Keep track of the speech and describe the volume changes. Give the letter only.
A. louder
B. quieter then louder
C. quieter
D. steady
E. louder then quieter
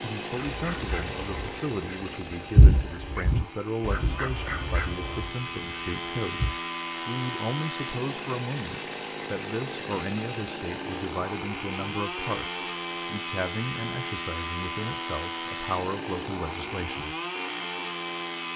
D.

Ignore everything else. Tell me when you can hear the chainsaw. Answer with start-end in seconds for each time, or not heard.
0.0-18.5.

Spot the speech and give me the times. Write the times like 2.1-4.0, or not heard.
0.0-17.1.